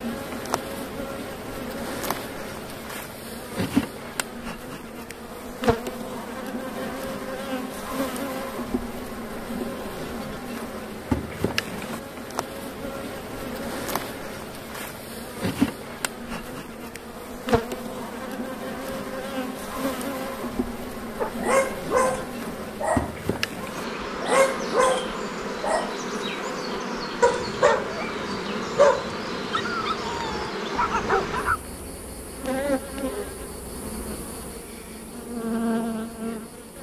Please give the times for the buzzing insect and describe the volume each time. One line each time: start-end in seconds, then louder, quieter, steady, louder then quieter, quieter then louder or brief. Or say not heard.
0.0-36.7 steady.